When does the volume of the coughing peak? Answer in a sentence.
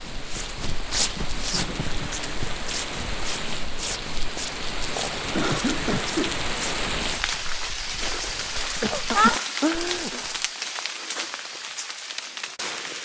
The volume of the coughing peaks at 9 seconds.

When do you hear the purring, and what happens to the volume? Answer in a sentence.
You can't hear the purring here.